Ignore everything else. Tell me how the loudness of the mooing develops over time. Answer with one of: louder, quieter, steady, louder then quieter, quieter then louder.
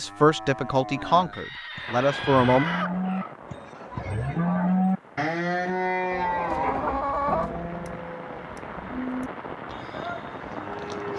louder then quieter.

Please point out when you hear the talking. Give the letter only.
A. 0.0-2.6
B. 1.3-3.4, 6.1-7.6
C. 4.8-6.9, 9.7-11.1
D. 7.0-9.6
A.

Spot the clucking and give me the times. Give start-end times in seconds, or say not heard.
1.3-3.4, 6.1-7.6.